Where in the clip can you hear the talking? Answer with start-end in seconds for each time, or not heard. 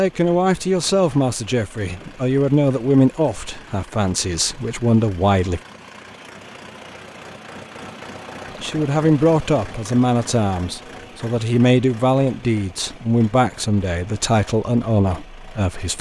0.0-5.6, 8.6-15.9.